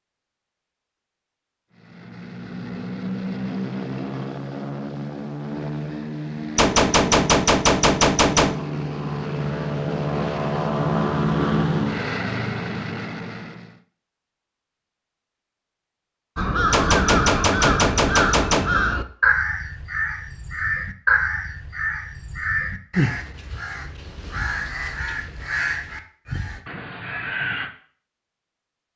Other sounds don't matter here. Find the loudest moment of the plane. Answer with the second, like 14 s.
11 s.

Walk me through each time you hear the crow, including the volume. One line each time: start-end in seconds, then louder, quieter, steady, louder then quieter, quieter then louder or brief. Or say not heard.
16.4-27.7 quieter.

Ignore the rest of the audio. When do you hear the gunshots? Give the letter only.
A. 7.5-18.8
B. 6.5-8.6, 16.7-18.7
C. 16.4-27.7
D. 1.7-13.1
B.